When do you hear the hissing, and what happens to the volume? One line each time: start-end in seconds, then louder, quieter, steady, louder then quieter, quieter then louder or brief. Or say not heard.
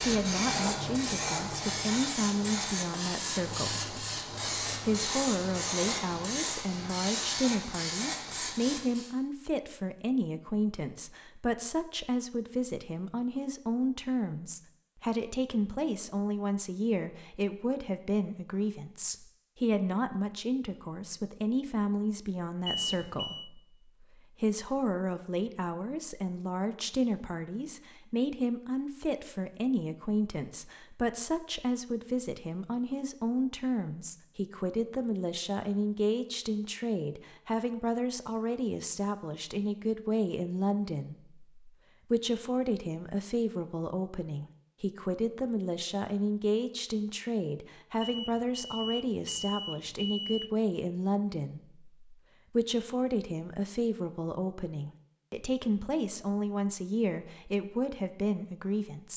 0.0-9.2 steady.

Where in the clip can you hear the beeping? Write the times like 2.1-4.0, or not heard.
22.6-23.5, 48.0-50.5.